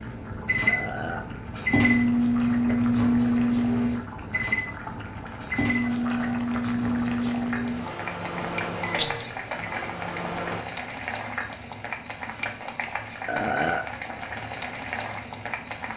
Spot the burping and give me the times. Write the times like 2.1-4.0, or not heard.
0.7-1.3, 5.8-6.5, 13.2-13.9.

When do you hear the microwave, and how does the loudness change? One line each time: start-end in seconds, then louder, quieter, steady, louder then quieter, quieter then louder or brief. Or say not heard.
0.0-10.7 quieter.